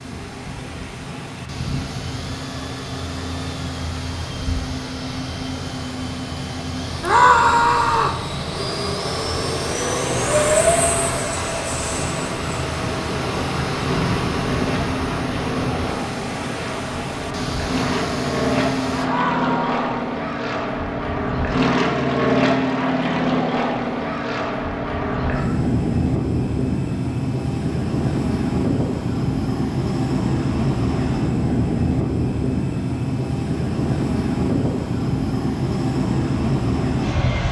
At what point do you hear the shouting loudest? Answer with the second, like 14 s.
7 s.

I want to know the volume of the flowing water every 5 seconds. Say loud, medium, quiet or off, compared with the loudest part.
medium, medium, loud, loud, off, off, off, off.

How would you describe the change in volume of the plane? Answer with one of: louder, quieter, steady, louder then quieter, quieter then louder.
louder.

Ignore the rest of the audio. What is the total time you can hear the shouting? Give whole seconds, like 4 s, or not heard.
2 s.